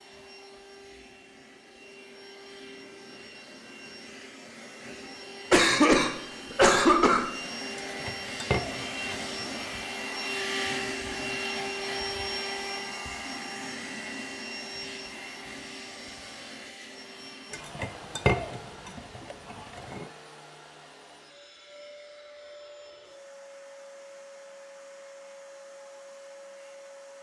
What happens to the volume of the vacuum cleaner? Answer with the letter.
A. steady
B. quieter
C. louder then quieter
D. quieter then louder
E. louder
C.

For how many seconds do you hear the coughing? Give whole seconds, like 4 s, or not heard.
2 s.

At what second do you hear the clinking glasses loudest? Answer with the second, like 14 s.
18 s.